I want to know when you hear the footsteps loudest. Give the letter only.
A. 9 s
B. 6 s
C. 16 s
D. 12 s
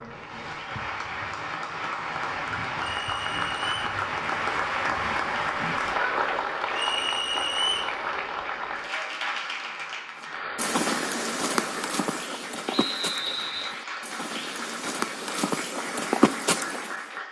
C.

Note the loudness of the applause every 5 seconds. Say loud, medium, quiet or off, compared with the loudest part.
loud, loud, medium, medium.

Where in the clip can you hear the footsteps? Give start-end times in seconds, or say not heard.
10.6-17.1.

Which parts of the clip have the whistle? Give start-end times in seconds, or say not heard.
2.8-3.9, 6.7-8.0, 12.7-13.7.